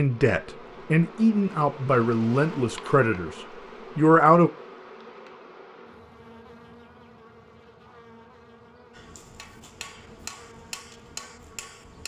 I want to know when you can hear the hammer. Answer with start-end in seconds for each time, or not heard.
8.9-12.0.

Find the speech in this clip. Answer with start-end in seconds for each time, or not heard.
0.0-3.3, 4.0-4.5.